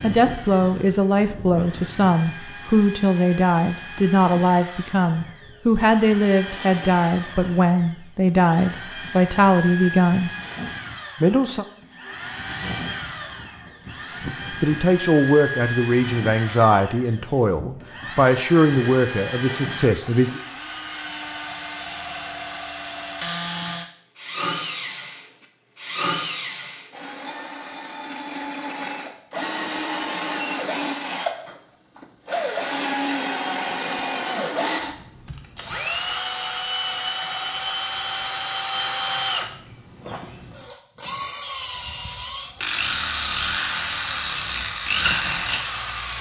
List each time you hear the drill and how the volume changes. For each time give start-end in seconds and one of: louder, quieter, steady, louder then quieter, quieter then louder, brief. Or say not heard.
0.0-46.1 louder.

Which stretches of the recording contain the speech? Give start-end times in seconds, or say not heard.
0.0-10.3, 11.2-11.7, 14.1-20.4.